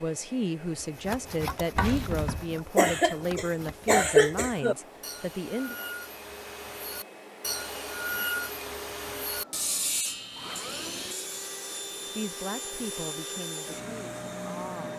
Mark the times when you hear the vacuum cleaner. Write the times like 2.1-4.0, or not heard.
0.0-14.9.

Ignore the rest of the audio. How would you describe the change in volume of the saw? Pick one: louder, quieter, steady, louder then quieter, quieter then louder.
louder.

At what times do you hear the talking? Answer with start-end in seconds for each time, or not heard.
0.0-5.8, 12.2-14.9.